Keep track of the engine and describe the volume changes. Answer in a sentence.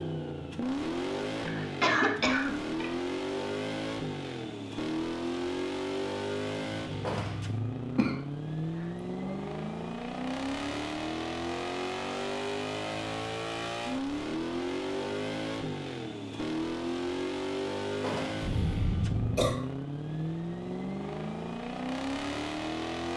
The volume of the engine stays about the same.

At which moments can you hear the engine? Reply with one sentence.
The engine can be heard from 0.0 to 23.1 s.